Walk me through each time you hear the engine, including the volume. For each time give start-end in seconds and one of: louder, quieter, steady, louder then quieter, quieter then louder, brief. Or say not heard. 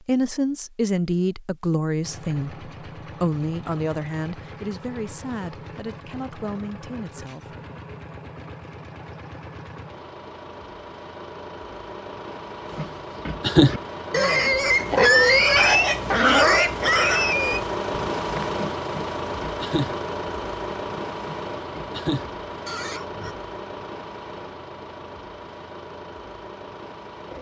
2.0-27.3 louder then quieter.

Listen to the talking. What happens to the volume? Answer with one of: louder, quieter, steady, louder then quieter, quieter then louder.
quieter.